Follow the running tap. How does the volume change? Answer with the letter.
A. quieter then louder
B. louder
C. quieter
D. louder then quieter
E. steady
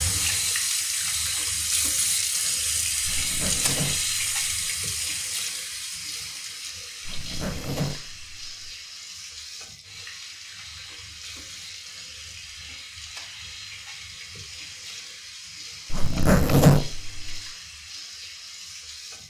C.